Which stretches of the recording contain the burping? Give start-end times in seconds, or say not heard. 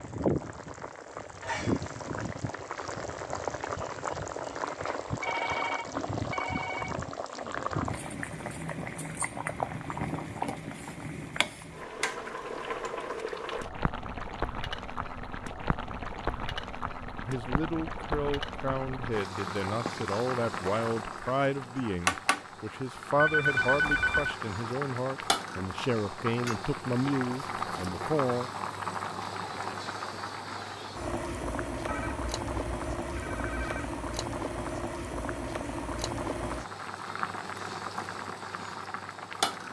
not heard.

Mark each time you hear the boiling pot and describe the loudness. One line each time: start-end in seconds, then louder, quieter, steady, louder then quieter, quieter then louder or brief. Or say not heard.
0.0-39.6 steady.